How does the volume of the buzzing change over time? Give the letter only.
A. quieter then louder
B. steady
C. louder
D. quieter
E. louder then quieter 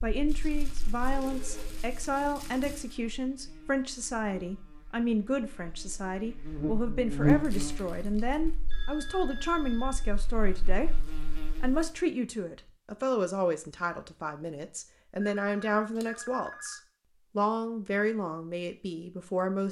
E.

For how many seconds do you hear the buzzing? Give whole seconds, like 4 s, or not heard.
12 s.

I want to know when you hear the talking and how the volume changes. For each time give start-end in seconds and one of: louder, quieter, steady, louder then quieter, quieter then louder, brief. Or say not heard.
0.0-19.6 steady.